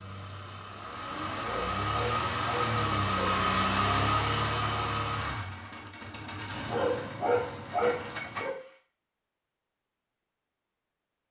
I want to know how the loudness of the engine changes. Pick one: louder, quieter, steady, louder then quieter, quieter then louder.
louder then quieter.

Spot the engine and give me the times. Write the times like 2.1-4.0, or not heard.
0.0-8.8.